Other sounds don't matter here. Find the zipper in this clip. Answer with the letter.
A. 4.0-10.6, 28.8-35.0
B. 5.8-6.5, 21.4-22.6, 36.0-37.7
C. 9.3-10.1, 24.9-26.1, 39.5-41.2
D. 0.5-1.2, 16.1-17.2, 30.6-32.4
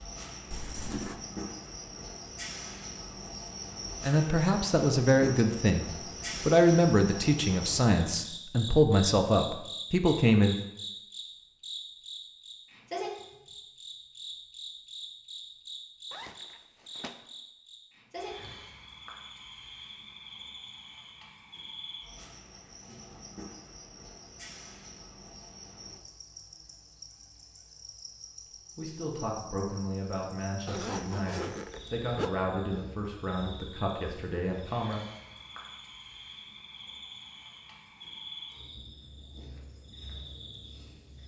D.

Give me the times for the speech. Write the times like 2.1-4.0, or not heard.
4.0-10.6, 28.8-35.0.